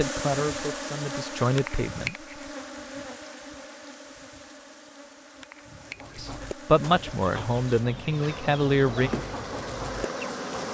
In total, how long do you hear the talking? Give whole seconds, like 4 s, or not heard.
5 s.